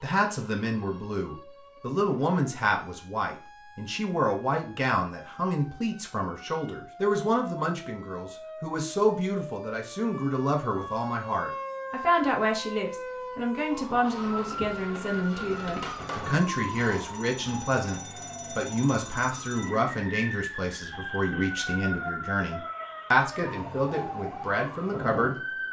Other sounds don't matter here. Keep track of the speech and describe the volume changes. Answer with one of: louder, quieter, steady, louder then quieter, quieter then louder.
steady.